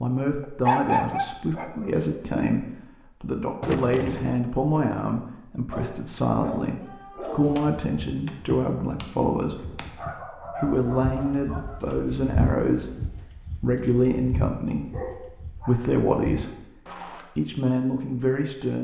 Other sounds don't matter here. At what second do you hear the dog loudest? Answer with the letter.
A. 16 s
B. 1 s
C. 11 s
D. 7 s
B.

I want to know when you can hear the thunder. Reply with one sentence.
You can hear the thunder from 3.6 to 4.4 s.